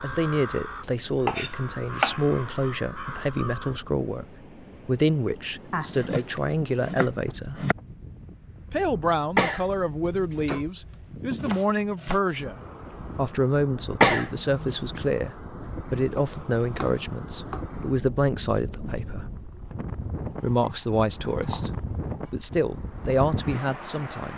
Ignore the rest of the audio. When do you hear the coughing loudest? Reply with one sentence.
The loudest moment of the coughing is at 14 seconds.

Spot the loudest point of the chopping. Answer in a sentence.
The loudest moment of the chopping is at 2 seconds.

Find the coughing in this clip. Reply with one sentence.
The coughing can be heard from 9.3 to 10.4 s and from 14.0 to 15.1 s.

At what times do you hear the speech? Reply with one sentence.
You can hear the speech from 0.0 to 4.2 s, from 4.8 to 7.7 s, from 8.7 to 19.2 s and from 20.2 to 24.3 s.